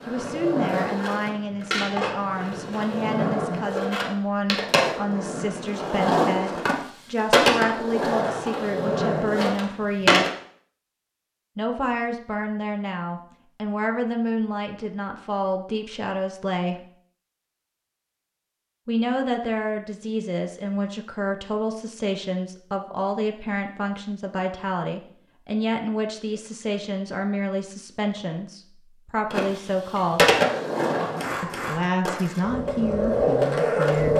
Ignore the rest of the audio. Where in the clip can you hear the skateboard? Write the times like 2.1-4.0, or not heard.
0.0-10.3, 29.3-34.1.